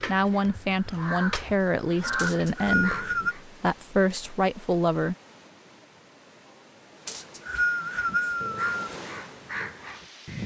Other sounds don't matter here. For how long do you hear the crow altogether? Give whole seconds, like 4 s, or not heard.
6 s.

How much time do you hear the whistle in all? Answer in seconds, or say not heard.
3 s.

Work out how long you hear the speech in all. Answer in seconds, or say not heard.
5 s.